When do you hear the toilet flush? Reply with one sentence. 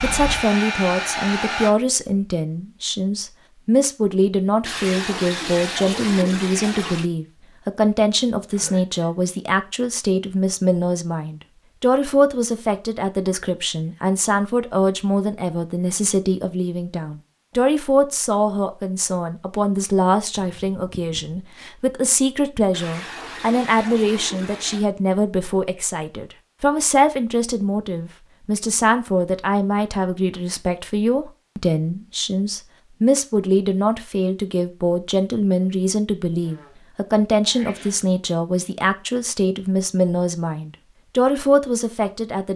The toilet flush can be heard from 4.7 to 7.1 s and from 22.7 to 24.9 s.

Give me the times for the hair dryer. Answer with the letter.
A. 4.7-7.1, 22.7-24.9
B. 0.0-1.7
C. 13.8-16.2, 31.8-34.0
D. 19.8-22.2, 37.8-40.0
B.